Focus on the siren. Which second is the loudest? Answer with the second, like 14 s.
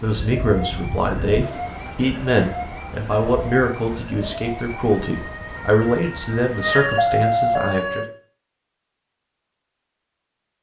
7 s.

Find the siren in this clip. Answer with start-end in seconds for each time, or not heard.
0.0-8.1.